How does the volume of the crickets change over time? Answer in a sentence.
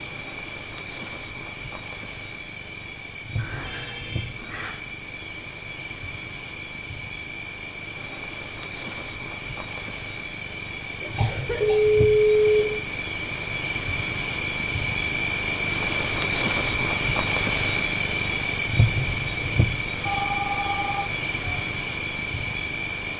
The volume of the crickets goes up.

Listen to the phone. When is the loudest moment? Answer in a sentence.
The loudest moment of the phone is at 12 seconds.